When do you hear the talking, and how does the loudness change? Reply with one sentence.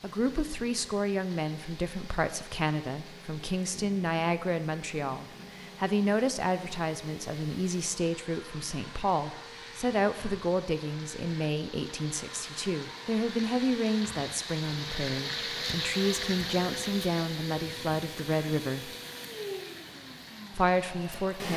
You can hear the talking from 0.0 to 18.9 s, at a steady volume; and briefly from 20.5 to 21.5 s.